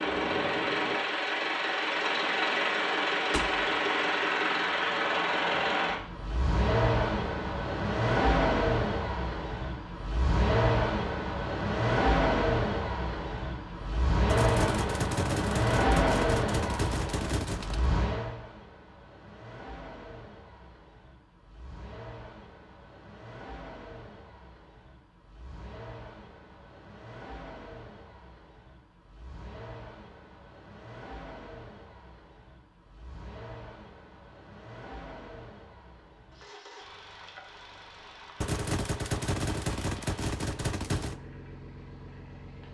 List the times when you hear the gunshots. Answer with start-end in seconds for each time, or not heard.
3.3-3.8, 14.2-17.9, 38.4-41.1.